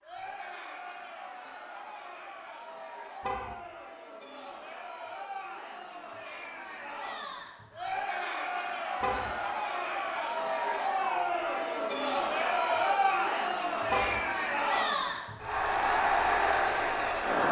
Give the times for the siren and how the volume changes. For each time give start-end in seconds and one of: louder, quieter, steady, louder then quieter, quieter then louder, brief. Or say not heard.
not heard.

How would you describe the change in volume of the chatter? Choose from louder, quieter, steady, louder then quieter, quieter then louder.
louder.